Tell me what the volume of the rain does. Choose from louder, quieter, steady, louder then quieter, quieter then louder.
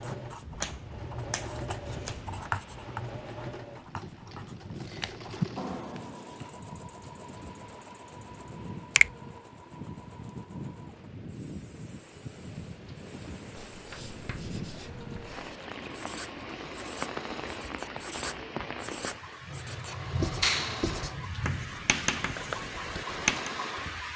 louder.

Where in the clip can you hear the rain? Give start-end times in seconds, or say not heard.
0.0-24.1.